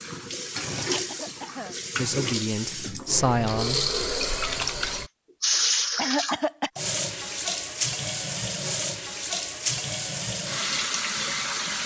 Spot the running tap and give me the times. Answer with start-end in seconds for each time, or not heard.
0.0-11.8.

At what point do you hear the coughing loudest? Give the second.
6 s.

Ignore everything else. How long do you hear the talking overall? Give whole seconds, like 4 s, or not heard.
2 s.